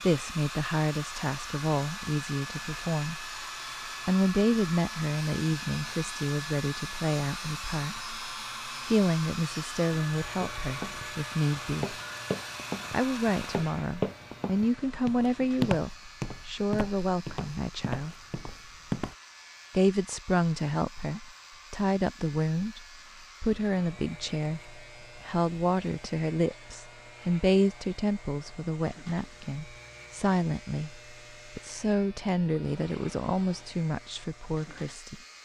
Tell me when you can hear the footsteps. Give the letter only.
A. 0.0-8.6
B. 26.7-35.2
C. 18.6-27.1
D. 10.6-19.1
D.